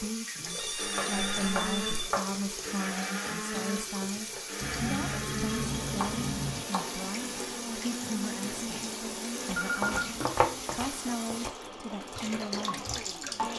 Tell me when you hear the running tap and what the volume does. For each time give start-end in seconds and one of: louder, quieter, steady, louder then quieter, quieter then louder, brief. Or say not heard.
0.0-13.5 steady.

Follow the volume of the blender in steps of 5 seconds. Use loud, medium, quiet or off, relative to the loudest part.
loud, loud, medium.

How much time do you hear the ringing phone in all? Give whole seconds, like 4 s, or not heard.
4 s.